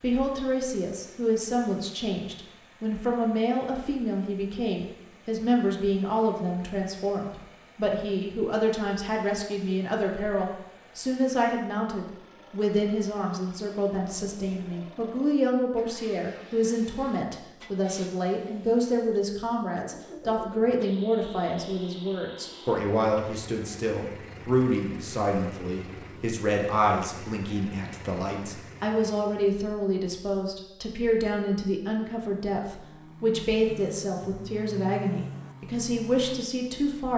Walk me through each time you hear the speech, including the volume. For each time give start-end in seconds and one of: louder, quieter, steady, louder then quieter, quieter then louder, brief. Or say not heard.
0.0-37.1 steady.